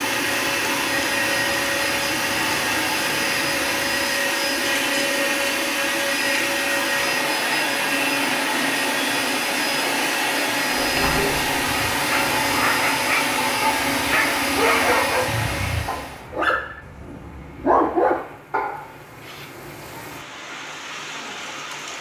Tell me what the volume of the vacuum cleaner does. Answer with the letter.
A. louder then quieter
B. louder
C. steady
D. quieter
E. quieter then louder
C.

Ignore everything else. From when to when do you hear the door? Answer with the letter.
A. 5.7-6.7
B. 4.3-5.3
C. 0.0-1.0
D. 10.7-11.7
D.